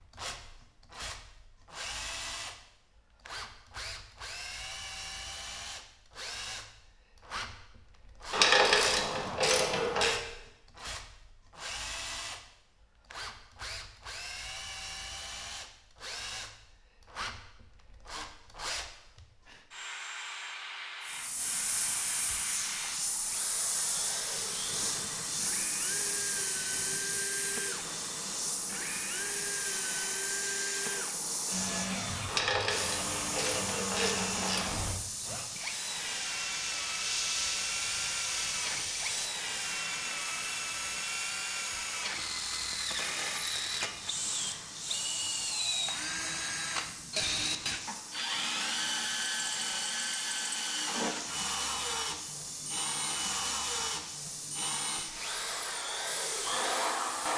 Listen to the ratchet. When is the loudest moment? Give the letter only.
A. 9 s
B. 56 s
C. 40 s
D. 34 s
A.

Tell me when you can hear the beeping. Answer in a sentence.
You can't hear the beeping here.